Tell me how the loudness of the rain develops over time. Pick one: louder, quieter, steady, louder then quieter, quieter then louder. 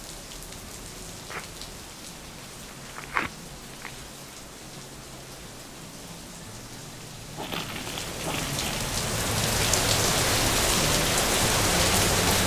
louder.